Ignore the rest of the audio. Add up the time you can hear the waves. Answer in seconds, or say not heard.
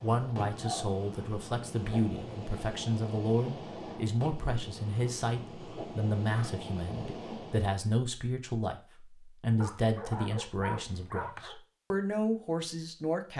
8 s.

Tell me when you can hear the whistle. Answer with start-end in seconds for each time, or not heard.
not heard.